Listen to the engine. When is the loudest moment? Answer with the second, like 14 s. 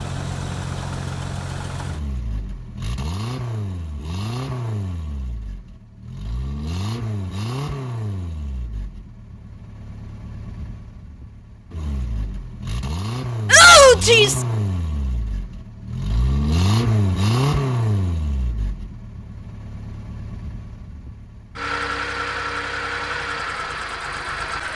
17 s.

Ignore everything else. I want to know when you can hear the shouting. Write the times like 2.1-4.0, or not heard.
13.5-14.4.